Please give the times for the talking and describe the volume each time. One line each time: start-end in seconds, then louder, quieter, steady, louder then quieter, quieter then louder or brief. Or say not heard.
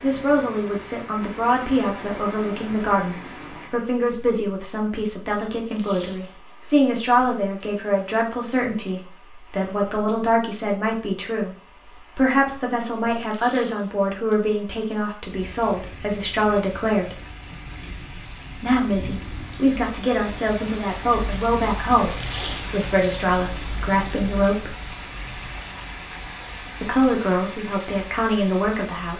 0.0-17.2 steady
18.6-24.8 steady
26.8-29.1 brief.